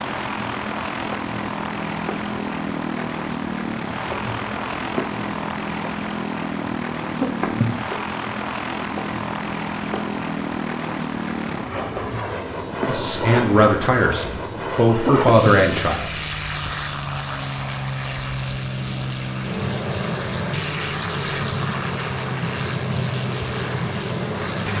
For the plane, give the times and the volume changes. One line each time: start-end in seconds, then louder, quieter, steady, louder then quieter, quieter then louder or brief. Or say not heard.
0.0-24.7 steady.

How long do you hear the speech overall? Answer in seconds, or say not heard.
3 s.